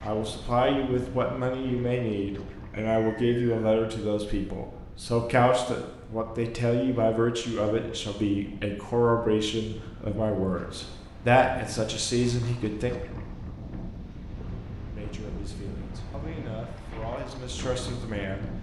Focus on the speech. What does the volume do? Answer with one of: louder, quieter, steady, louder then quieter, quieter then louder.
quieter.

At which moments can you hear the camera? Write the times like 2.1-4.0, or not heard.
not heard.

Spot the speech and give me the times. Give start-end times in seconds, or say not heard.
0.0-12.9, 14.9-18.5.